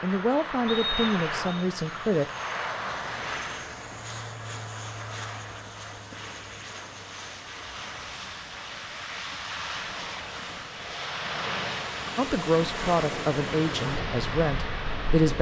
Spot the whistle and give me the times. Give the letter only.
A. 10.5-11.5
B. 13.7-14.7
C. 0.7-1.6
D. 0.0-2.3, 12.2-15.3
C.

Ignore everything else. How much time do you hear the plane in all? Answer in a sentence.
The plane can be heard for 15 seconds in total.